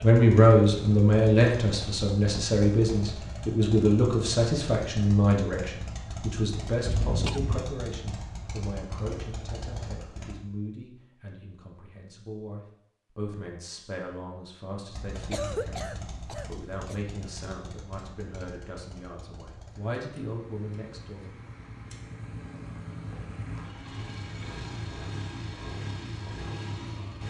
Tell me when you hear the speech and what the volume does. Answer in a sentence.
The speech can be heard from 0.0 to 21.3 s, getting quieter.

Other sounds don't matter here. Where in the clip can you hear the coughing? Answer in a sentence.
The coughing can be heard from 6.8 to 7.7 s and from 15.3 to 17.0 s.